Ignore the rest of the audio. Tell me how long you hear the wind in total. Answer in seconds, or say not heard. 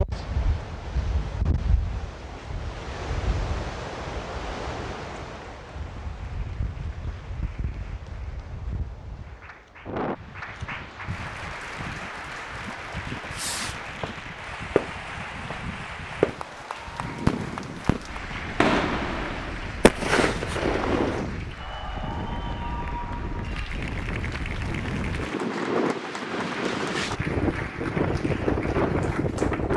30 s.